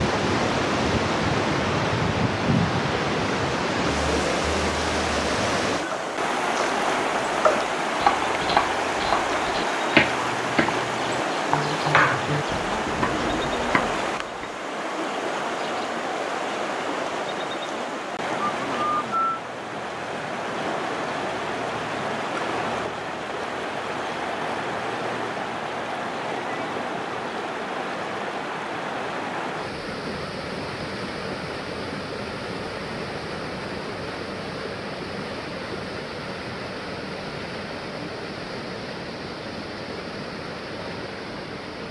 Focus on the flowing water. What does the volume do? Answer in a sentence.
The loudness of the flowing water goes down.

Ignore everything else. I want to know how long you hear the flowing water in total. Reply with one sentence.
You can hear the flowing water for 42 seconds altogether.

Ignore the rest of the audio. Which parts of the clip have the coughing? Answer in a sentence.
You can't hear the coughing here.